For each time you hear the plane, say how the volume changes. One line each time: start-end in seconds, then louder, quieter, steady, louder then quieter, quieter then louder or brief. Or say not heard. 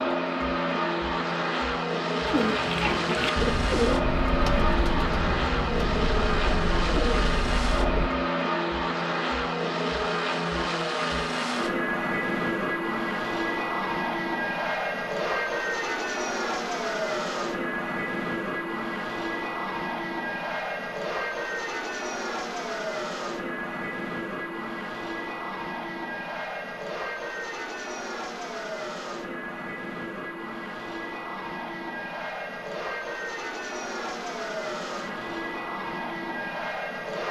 0.0-37.2 quieter.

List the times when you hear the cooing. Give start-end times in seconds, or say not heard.
2.2-8.1.